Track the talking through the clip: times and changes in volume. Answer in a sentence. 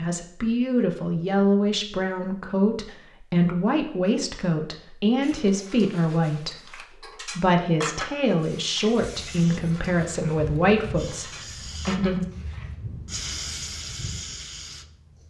You can hear the talking from 0.0 to 12.2 s, at a steady volume.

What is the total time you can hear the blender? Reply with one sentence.
The blender can't be heard in this clip.